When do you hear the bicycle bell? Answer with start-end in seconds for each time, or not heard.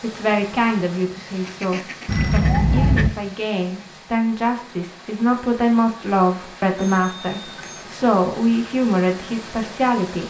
2.0-3.1, 6.8-7.8.